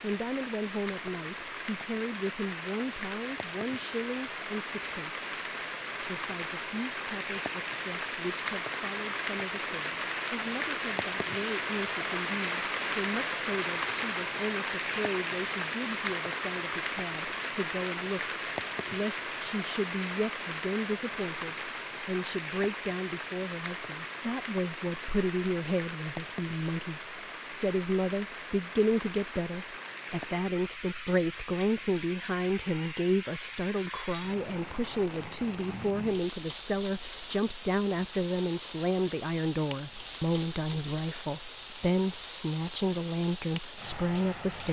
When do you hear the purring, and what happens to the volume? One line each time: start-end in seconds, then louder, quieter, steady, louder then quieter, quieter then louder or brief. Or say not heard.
not heard.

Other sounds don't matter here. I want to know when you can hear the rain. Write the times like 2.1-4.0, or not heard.
0.0-44.6.